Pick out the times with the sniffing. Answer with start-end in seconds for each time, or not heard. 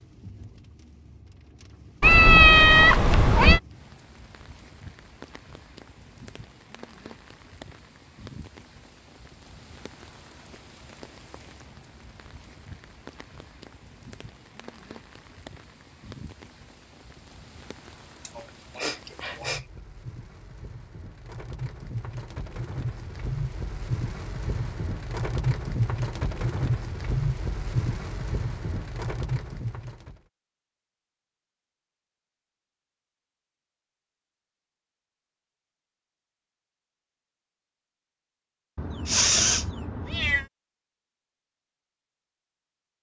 18.2-19.6, 39.0-39.6.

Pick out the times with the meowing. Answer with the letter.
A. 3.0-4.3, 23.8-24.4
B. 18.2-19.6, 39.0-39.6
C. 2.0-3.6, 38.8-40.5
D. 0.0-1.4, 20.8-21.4
C.